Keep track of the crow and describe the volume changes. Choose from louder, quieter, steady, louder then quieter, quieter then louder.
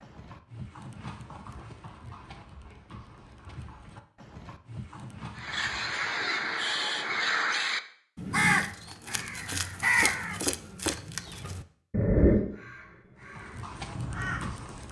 quieter.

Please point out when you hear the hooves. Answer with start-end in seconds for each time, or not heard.
0.0-6.1, 13.2-14.8.